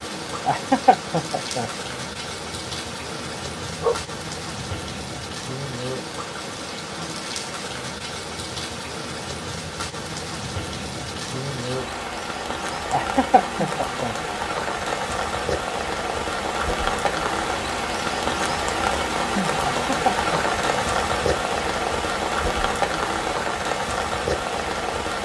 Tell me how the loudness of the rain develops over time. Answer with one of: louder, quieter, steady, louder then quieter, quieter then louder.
louder.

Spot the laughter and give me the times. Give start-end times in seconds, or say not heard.
0.5-1.7, 12.9-14.2, 19.6-20.6.